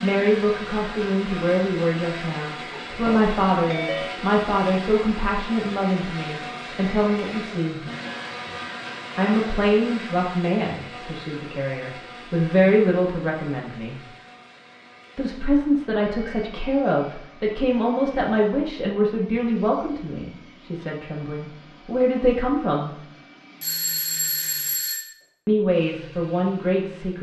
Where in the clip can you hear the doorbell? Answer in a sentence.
The doorbell can be heard from 2.7 to 4.2 s and from 23.6 to 25.1 s.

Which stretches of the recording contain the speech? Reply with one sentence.
You can hear the speech from 0.0 to 7.8 s, from 9.2 to 13.9 s, from 15.2 to 22.9 s and from 25.4 to 27.1 s.